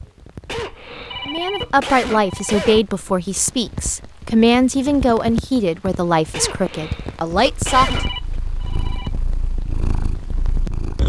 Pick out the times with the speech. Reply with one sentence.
You can hear the speech from 1.2 to 7.9 s.